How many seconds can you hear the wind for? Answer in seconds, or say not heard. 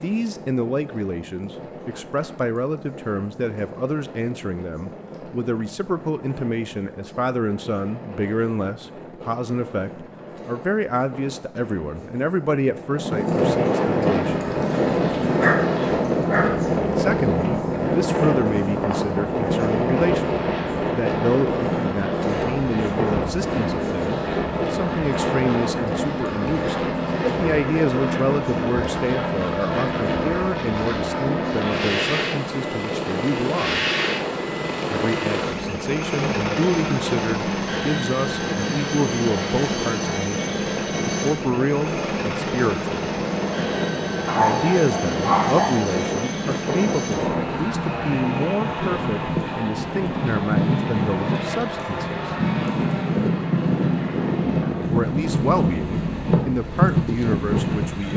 58 s.